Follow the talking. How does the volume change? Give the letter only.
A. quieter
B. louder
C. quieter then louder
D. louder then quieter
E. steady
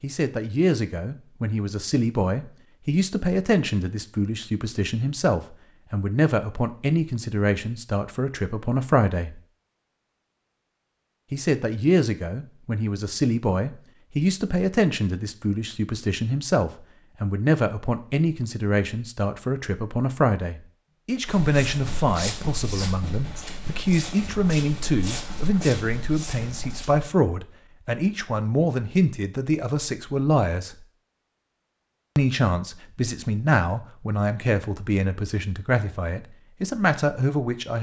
E.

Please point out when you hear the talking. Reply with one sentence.
The talking can be heard from 0.0 to 9.4 s, from 11.3 to 30.9 s and from 32.1 to 37.7 s.